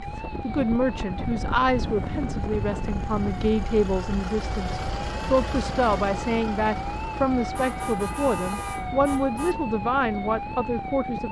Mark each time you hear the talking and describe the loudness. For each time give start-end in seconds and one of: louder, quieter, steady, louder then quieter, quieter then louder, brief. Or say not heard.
0.0-11.2 steady.